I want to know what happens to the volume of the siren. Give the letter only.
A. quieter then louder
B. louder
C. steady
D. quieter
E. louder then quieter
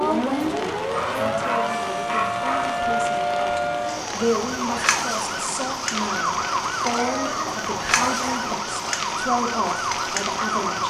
C.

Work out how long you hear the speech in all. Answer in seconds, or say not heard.
11 s.